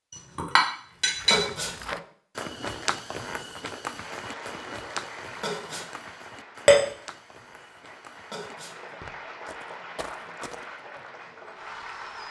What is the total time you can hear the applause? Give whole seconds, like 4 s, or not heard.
8 s.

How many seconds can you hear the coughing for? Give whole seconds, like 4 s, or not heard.
2 s.